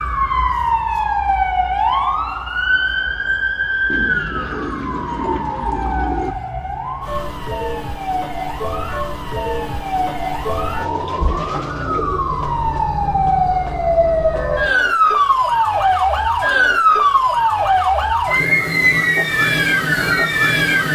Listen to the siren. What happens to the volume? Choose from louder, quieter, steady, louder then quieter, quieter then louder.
quieter then louder.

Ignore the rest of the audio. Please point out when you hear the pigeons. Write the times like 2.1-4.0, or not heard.
3.9-6.3, 10.8-12.8.